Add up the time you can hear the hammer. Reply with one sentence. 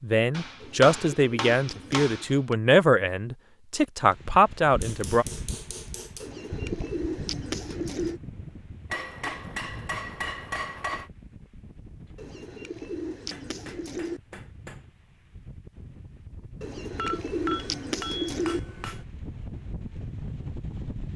You can hear the hammer for 10 seconds altogether.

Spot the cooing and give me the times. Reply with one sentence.
The cooing can be heard from 0.6 to 2.1 s, from 6.2 to 8.2 s, from 12.2 to 14.2 s and from 16.6 to 18.6 s.